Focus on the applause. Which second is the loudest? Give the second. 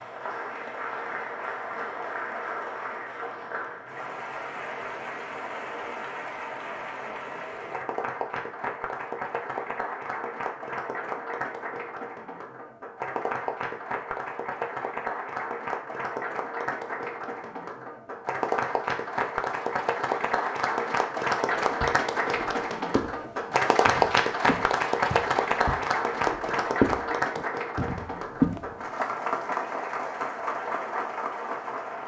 24 s.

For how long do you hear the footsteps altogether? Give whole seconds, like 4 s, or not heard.
7 s.